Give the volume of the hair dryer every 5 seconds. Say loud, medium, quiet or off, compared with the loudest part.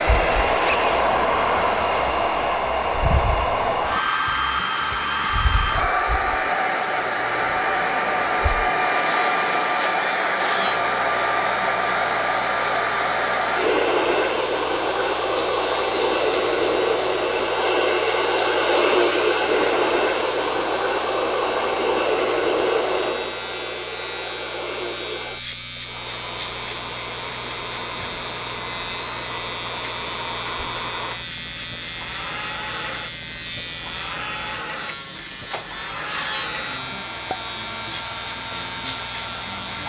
loud, loud, loud, loud, loud, quiet, quiet, quiet.